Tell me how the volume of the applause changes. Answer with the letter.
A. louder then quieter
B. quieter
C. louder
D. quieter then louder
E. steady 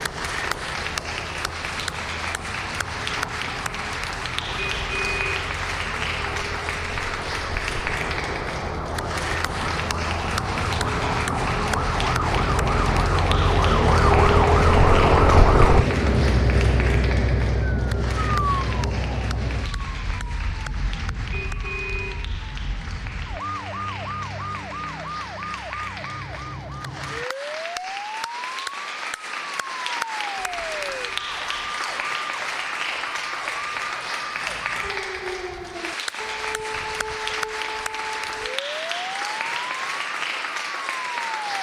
D.